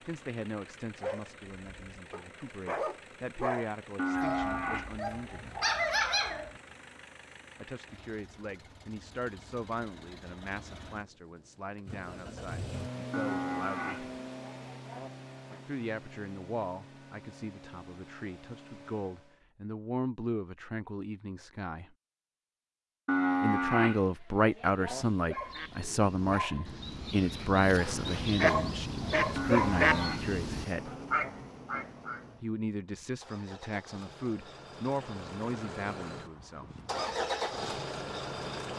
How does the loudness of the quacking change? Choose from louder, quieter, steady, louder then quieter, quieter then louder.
louder.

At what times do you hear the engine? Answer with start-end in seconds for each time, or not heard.
0.0-19.4, 30.5-38.7.